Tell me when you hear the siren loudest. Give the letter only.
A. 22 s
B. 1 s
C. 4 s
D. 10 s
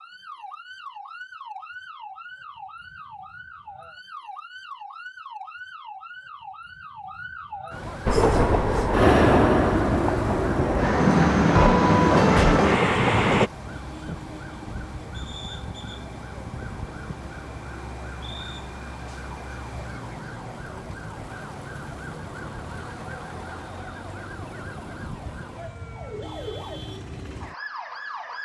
D.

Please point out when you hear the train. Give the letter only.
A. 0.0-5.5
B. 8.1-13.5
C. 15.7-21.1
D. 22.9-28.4
B.